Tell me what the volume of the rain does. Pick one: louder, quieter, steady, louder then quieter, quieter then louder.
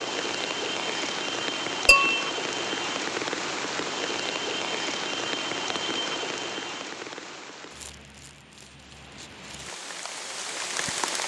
quieter.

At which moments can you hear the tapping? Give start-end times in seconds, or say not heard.
1.9-2.3.